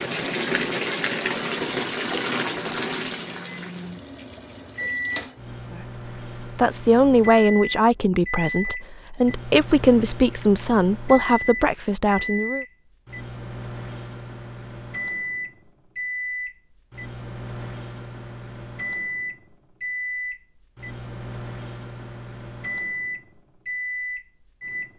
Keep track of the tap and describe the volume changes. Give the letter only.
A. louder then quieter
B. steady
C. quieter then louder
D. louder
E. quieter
E.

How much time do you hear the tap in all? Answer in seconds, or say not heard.
5 s.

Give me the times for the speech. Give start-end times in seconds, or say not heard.
6.4-12.7.